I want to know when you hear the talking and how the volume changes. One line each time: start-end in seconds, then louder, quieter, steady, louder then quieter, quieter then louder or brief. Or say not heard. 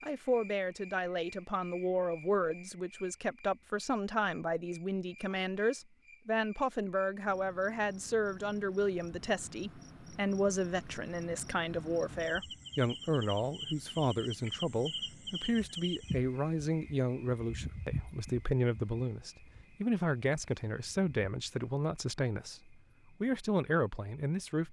0.0-24.6 steady.